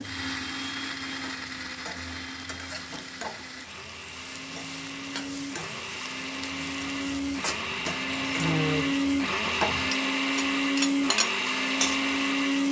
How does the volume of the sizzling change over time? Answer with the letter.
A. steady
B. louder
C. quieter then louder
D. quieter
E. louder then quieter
B.